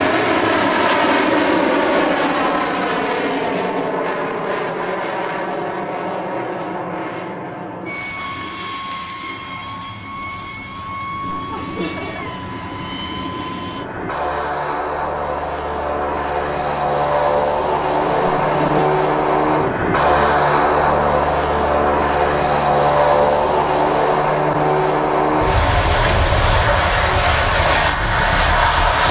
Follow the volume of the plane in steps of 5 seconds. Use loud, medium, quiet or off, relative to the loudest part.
loud, medium, medium, loud, loud, loud.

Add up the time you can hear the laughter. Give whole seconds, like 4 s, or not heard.
2 s.